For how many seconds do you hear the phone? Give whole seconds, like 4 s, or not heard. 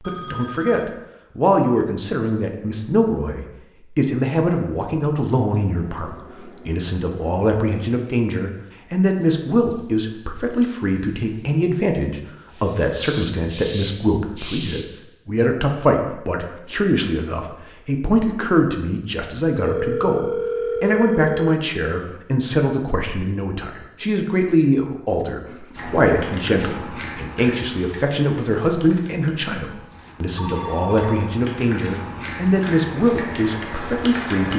4 s.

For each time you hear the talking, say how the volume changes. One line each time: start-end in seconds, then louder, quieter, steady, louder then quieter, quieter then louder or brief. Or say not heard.
0.0-34.5 steady.